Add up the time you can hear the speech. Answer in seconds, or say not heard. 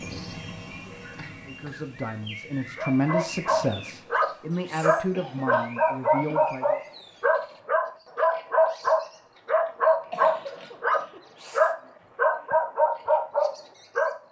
5 s.